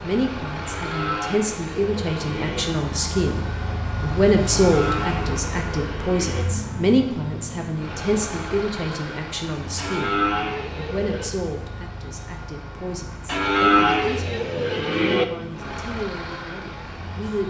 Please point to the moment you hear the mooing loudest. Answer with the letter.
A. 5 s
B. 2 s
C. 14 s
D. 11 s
C.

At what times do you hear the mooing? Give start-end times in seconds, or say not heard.
0.7-2.6, 4.5-6.5, 9.8-11.3, 13.2-15.2.